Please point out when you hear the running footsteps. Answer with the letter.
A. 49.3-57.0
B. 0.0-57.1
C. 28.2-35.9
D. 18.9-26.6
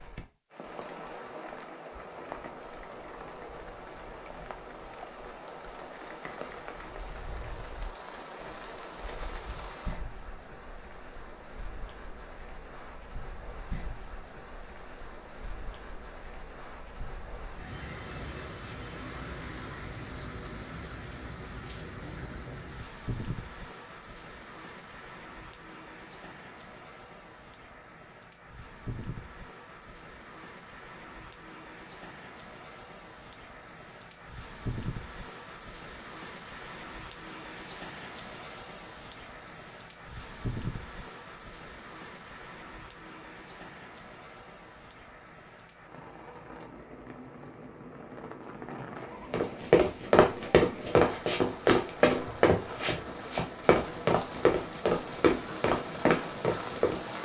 A.